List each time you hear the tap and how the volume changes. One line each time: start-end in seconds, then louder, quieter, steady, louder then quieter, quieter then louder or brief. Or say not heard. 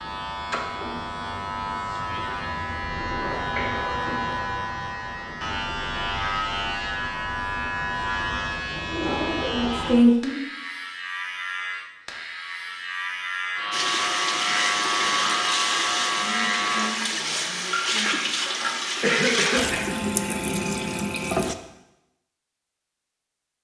13.7-21.6 steady.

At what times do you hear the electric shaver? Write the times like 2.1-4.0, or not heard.
0.0-16.9.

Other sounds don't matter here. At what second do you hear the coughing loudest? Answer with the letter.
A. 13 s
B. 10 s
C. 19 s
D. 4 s
C.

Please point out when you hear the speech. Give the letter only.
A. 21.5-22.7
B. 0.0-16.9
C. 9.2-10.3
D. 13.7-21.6
C.